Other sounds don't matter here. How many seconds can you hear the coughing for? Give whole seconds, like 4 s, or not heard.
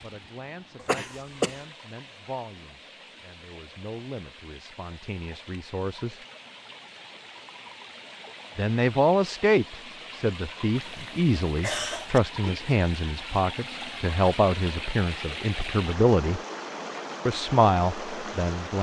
2 s.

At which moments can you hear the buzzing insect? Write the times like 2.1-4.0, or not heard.
not heard.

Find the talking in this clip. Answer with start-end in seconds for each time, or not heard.
0.0-6.2, 8.6-16.4, 17.2-18.7.